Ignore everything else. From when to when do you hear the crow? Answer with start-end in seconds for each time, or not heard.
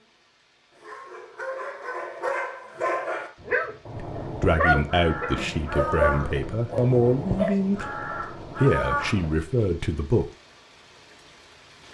3.9-9.3.